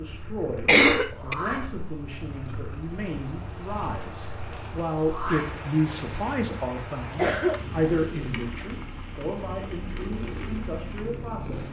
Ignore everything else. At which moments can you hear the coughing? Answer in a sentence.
The coughing can be heard from 0.7 to 1.4 s and from 7.2 to 7.8 s.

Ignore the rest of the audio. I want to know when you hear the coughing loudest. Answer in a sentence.
The loudest moment of the coughing is at 1 second.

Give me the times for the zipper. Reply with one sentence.
The zipper can't be heard in this clip.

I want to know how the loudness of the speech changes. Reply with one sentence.
The loudness of the speech goes up, then down.